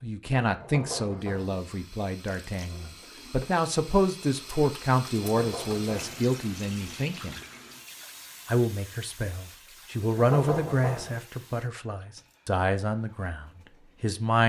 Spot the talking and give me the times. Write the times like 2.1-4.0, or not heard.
0.0-7.4, 8.4-14.4.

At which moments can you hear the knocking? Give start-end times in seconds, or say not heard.
0.6-1.6, 5.2-6.2, 10.2-11.2.